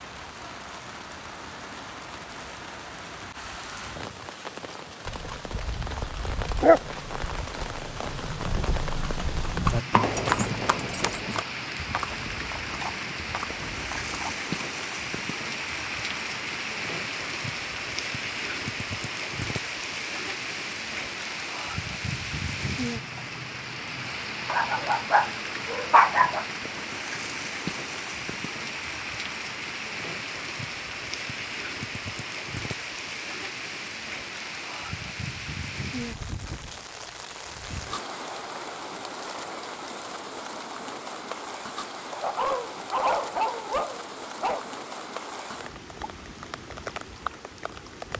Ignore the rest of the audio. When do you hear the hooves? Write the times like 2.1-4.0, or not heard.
5.0-14.5.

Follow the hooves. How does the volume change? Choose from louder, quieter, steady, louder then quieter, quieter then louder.
louder then quieter.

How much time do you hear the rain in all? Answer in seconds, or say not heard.
48 s.